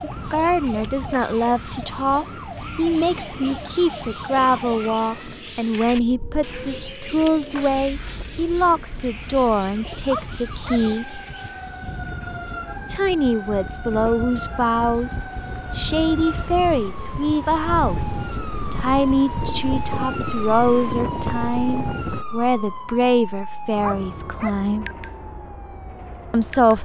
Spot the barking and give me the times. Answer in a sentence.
The barking can be heard from 10.1 to 10.9 s and from 23.8 to 24.6 s.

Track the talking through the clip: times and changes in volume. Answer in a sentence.
The talking can be heard from 0.0 to 11.2 s, at a steady volume; from 12.9 to 24.9 s, at a steady volume; and briefly from 26.3 to 26.8 s.